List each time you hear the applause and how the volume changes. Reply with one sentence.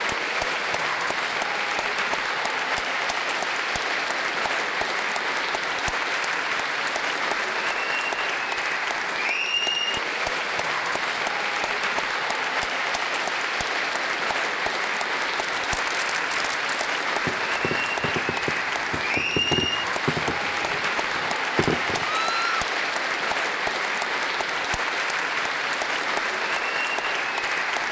The applause can be heard from 0.0 to 27.8 s, at a steady volume.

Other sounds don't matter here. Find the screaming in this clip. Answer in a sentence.
You can hear the screaming from 22.1 to 22.7 s.